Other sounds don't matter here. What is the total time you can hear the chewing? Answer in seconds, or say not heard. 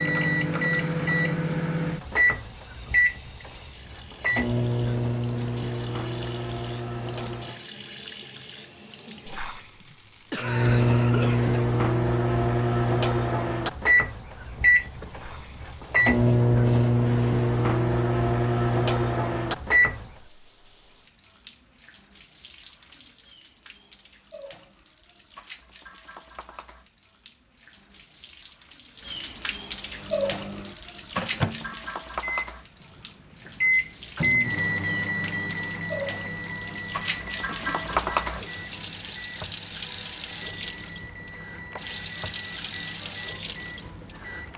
not heard.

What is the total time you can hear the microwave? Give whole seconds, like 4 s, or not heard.
32 s.